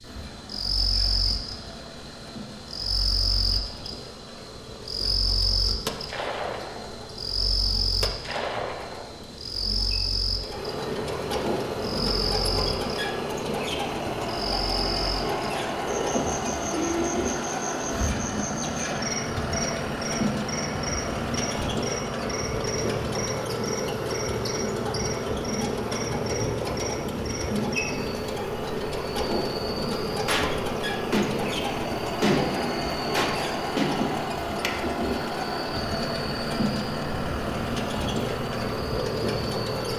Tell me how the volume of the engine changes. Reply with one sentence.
The volume of the engine goes up.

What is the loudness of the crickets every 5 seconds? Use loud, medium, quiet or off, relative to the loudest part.
loud, loud, loud, loud, medium, medium, medium, medium.